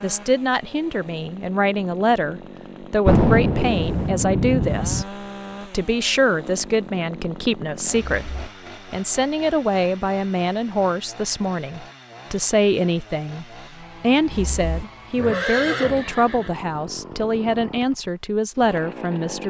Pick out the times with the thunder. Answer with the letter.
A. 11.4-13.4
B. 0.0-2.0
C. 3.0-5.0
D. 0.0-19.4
C.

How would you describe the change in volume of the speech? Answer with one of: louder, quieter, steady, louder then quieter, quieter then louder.
steady.